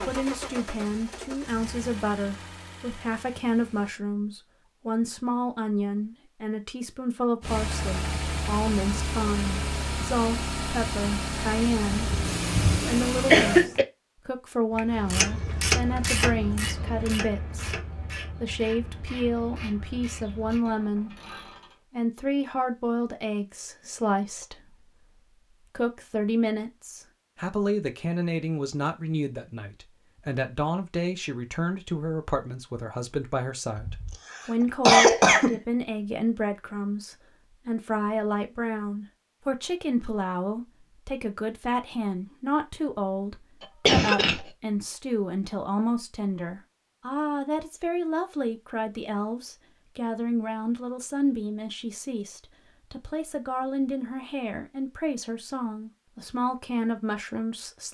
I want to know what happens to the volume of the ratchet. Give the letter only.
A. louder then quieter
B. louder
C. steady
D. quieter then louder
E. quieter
E.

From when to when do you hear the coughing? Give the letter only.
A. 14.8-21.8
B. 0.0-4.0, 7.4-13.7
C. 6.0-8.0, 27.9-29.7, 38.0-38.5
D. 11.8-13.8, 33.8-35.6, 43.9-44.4
D.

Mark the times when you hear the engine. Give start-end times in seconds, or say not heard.
0.0-4.0, 7.4-13.7.